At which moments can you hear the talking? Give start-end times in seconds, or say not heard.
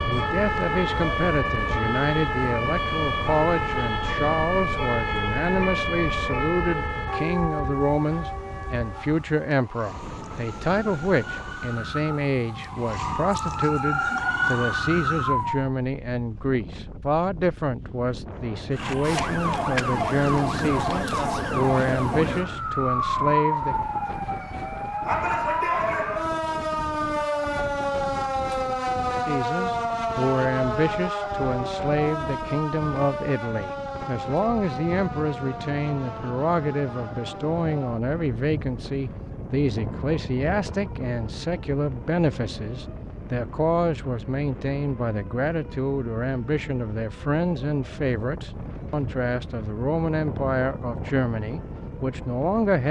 0.0-23.8, 29.2-52.8.